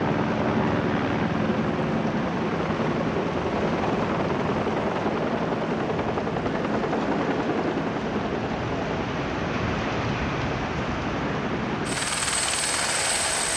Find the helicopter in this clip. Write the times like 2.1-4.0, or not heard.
0.0-13.5.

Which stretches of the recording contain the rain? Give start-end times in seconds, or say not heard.
0.0-13.5.